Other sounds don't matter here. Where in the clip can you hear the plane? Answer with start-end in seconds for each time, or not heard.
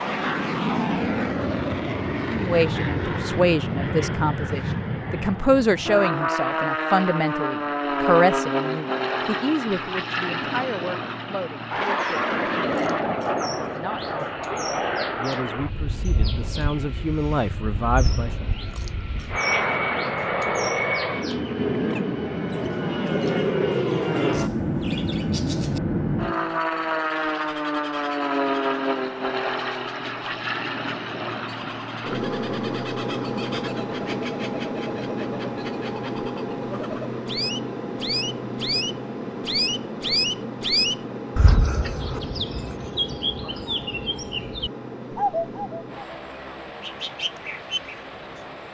0.0-48.6.